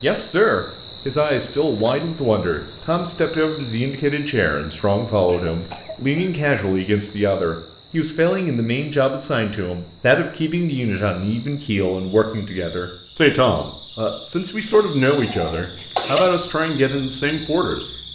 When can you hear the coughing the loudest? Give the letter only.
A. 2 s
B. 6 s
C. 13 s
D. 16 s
D.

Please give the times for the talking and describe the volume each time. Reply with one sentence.
The talking can be heard from 0.0 to 17.9 s, at a steady volume.